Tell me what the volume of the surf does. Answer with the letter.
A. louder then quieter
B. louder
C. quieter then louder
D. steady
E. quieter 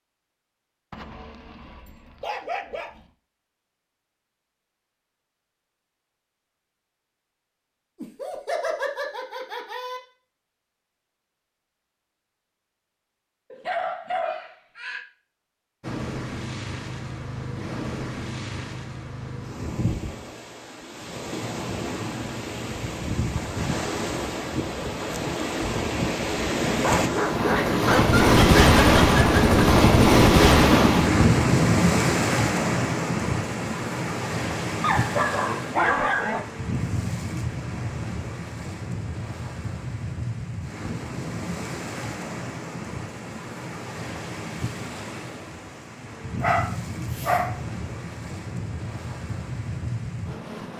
A.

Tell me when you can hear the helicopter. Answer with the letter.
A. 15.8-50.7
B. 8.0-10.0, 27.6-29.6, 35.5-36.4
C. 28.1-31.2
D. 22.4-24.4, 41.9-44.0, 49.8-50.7
C.